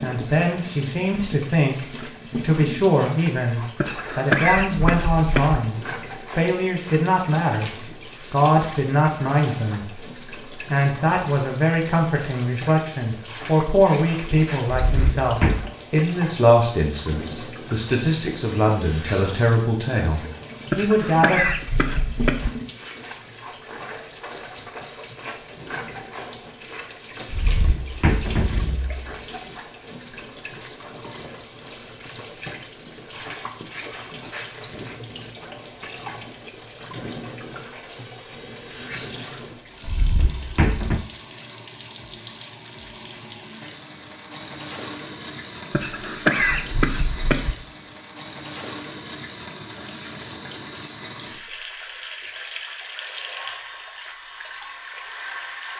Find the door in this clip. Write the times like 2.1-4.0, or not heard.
14.7-15.8, 27.3-29.0, 39.9-41.0.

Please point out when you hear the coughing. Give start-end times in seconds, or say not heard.
3.8-5.6, 20.7-22.5, 45.7-47.5.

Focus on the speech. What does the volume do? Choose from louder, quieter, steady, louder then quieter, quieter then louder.
steady.